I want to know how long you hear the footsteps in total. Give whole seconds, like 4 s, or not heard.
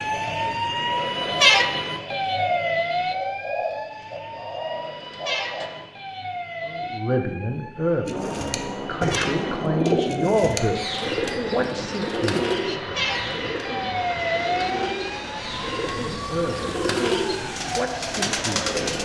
not heard.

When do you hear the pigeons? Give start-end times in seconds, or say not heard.
0.0-5.7, 8.1-19.0.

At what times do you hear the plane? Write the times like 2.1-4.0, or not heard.
8.1-19.0.